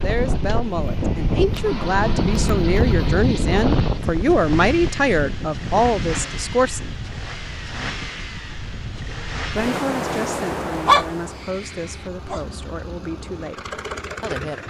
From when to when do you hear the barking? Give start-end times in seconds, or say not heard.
10.8-12.4.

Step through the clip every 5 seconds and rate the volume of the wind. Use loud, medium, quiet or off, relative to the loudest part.
loud, medium, loud.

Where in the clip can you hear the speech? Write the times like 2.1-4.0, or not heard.
0.0-7.0, 9.5-14.6.